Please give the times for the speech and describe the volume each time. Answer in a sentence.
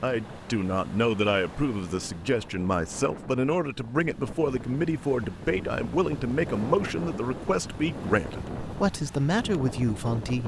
You can hear the speech from 0.0 to 10.4 s, at a steady volume.